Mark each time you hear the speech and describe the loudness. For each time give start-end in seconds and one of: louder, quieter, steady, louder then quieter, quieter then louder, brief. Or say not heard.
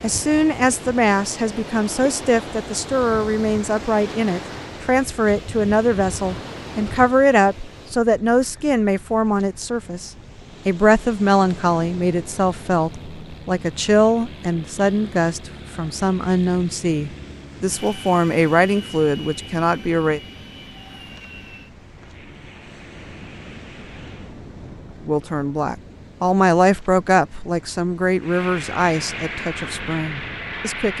0.0-20.2 steady
25.1-30.9 quieter.